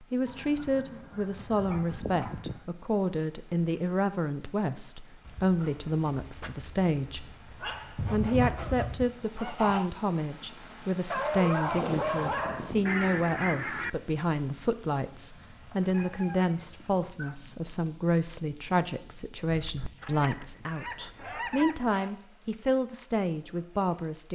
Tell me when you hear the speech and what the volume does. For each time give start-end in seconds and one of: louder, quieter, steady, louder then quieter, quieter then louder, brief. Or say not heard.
0.1-7.2 steady
8.1-24.2 steady.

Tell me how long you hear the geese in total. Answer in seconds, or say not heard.
8 s.